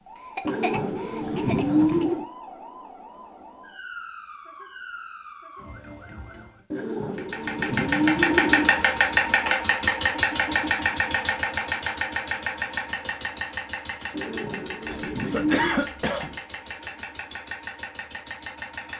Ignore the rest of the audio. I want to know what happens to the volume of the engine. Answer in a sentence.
The volume of the engine goes down.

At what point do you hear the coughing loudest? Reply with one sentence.
The loudest moment of the coughing is at 16 seconds.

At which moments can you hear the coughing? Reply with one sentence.
The coughing can be heard from 0.3 to 2.0 s and from 14.8 to 16.4 s.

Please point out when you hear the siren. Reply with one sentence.
You can hear the siren from 0.0 to 6.7 s.